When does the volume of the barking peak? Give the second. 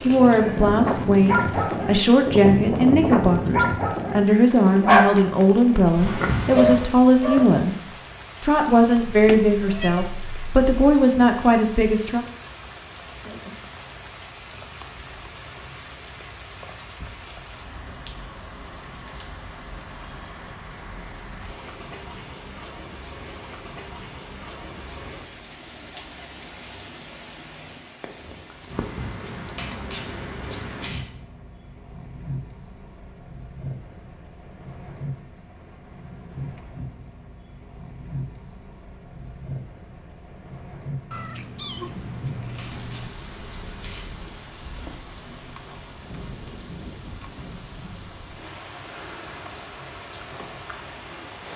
5 s.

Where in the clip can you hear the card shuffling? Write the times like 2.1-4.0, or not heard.
6.0-7.0, 28.7-31.1, 41.9-44.1.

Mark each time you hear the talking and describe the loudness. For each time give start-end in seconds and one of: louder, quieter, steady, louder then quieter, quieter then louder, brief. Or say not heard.
0.0-12.2 steady.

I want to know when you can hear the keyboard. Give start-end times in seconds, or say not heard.
not heard.